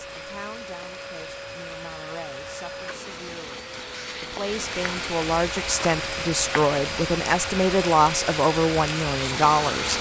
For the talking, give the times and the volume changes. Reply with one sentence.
You can hear the talking from 0.0 to 9.9 s, getting louder.